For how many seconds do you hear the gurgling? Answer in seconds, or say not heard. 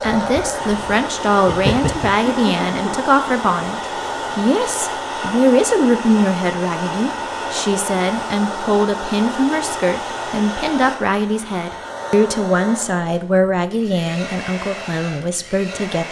2 s.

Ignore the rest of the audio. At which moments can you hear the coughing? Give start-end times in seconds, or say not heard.
2.2-3.0.